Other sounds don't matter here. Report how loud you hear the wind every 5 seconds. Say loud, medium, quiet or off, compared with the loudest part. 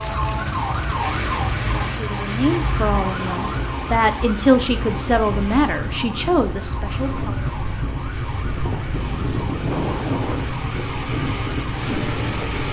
off, loud, loud.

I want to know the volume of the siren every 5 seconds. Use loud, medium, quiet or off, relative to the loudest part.
loud, medium, medium.